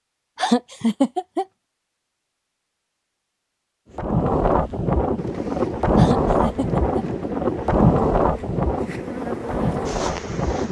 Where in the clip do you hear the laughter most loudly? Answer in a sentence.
The loudest moment of the laughter is at 1 second.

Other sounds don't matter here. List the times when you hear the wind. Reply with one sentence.
You can hear the wind from 3.9 to 10.6 s.